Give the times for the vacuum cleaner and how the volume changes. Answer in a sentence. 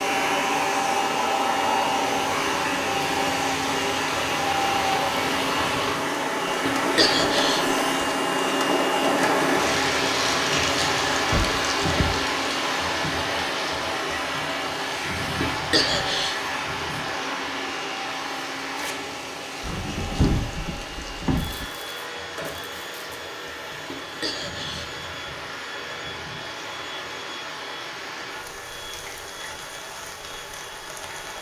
You can hear the vacuum cleaner from 0.0 to 31.3 s, getting quieter.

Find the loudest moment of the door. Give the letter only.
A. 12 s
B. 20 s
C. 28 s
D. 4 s
B.